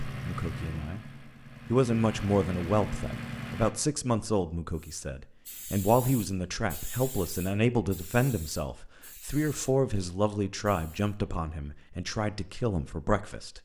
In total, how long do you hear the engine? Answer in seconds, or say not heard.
4 s.